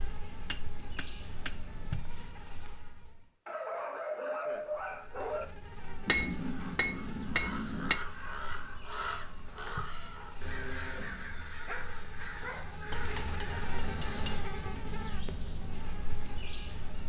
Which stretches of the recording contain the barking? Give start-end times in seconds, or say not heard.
3.5-5.5, 11.7-12.8.